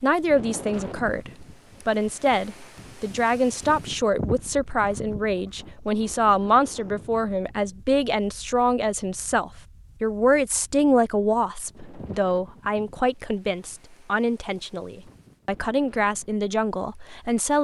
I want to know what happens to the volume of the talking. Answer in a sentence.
The loudness of the talking stays about the same.